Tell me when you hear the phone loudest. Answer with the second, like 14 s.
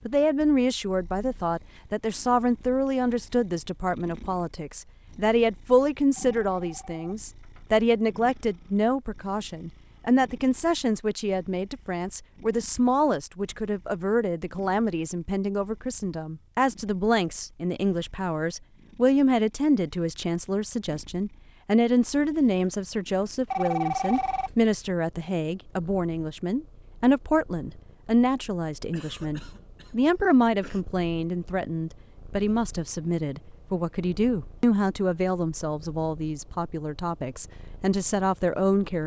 24 s.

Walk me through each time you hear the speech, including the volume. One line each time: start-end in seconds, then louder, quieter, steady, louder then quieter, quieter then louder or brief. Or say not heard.
0.1-39.0 steady.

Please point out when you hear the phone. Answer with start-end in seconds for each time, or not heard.
6.2-7.7, 23.5-24.5.